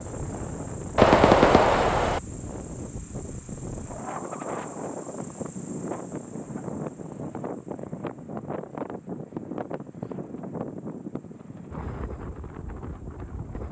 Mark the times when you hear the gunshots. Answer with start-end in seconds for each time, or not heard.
0.9-2.2.